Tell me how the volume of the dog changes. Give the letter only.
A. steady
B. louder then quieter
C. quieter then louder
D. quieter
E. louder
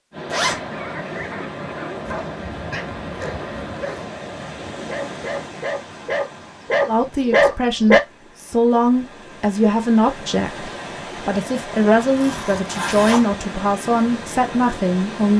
E.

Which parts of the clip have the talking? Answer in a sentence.
You can hear the talking from 6.8 to 15.3 s.